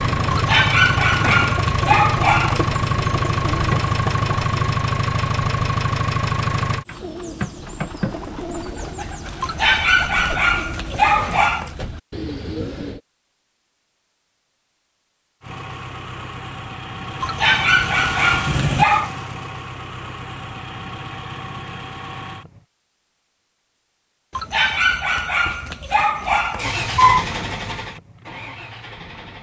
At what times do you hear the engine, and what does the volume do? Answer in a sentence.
You can hear the engine from 0.0 to 6.8 s, at a steady volume; from 15.4 to 22.6 s, getting louder then quieter; and briefly from 26.6 to 29.3 s.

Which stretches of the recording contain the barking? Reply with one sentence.
The barking can be heard from 0.3 to 2.7 s, from 9.4 to 11.7 s, from 17.2 to 19.1 s and from 24.4 to 27.2 s.